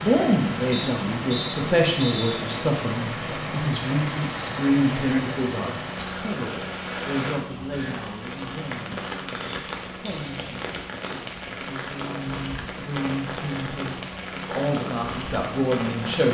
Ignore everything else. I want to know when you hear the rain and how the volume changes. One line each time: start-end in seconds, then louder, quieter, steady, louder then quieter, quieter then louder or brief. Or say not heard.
0.0-16.2 steady.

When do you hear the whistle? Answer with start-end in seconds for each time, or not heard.
0.7-2.4.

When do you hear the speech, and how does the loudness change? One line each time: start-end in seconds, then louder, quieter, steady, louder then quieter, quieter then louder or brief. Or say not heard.
0.0-16.2 quieter then louder.